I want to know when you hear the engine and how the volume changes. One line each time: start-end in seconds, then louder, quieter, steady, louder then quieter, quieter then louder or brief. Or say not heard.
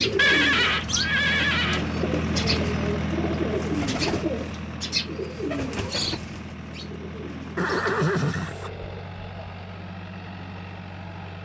0.0-11.4 quieter.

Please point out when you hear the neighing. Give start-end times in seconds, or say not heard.
0.1-1.9, 7.5-8.7.